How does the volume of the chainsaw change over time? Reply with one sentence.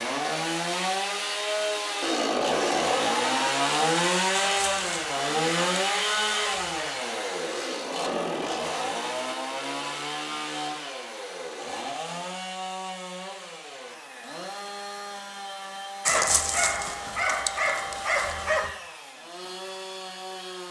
The volume of the chainsaw goes down.